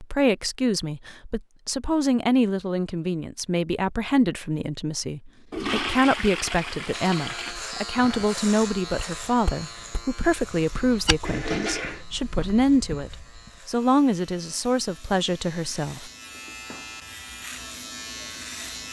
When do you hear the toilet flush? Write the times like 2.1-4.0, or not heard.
5.5-7.5, 11.2-12.1.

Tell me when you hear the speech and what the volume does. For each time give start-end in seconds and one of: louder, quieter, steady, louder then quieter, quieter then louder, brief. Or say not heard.
0.0-16.1 steady.